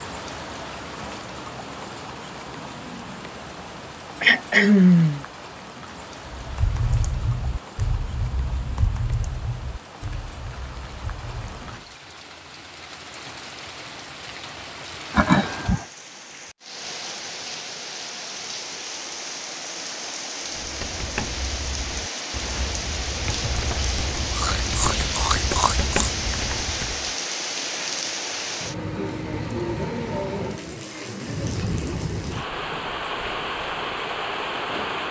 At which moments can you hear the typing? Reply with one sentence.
You can hear the typing from 6.2 to 11.9 s and from 20.5 to 27.1 s.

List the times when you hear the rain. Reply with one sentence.
You can hear the rain from 0.0 to 35.0 s.